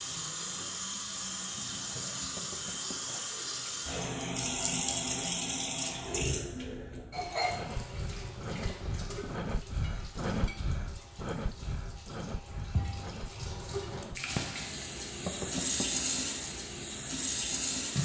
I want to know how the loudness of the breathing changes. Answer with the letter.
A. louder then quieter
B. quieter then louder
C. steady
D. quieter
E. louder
A.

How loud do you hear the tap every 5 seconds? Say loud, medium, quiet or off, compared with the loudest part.
loud, loud, medium, loud.